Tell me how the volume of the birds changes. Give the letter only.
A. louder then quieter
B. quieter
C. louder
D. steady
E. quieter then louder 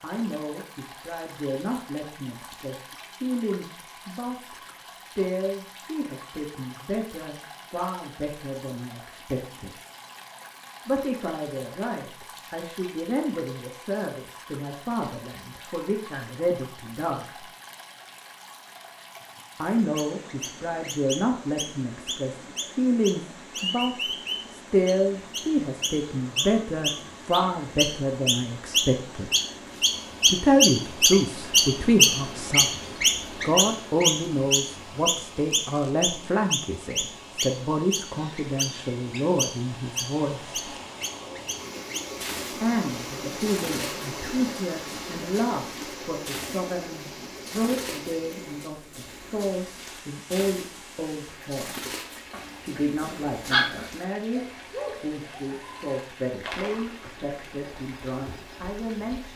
A.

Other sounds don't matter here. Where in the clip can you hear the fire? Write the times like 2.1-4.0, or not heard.
not heard.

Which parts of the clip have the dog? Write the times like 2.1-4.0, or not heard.
52.3-53.9.